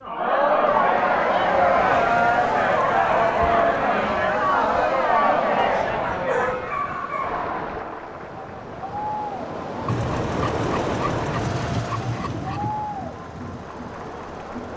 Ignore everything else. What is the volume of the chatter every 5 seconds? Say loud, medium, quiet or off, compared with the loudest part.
loud, medium, quiet.